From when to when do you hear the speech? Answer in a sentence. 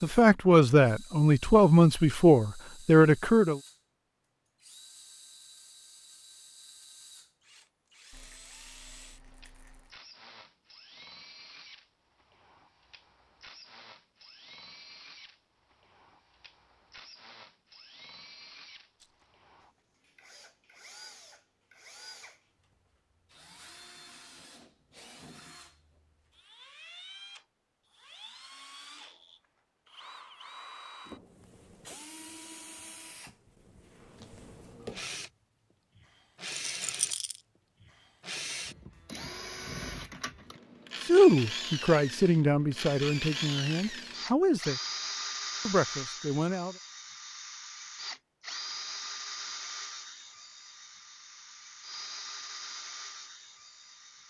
The speech can be heard from 0.0 to 3.6 s, from 41.0 to 44.8 s and from 45.6 to 46.8 s.